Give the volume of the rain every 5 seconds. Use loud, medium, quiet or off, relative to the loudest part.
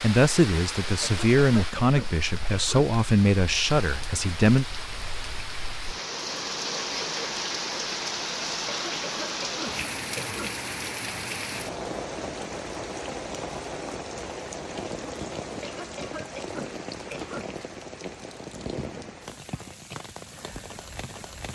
medium, loud, loud, medium, medium.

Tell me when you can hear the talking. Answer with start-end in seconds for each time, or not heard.
0.0-4.7.